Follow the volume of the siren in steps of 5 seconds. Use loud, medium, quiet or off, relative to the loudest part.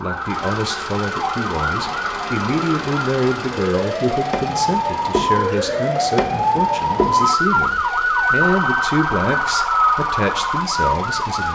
medium, loud, loud.